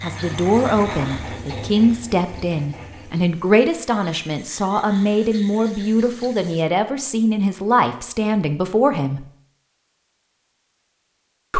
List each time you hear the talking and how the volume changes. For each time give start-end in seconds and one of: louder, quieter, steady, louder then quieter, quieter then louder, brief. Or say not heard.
0.0-9.2 steady.